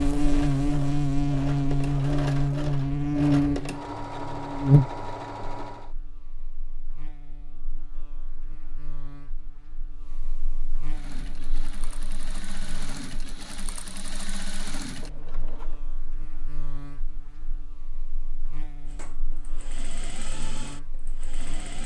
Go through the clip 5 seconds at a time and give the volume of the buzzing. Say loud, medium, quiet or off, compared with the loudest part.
loud, quiet, quiet, quiet, quiet.